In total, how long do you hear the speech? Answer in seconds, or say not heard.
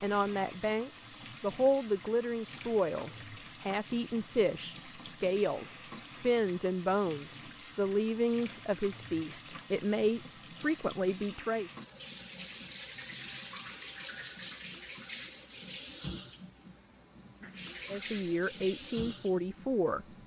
14 s.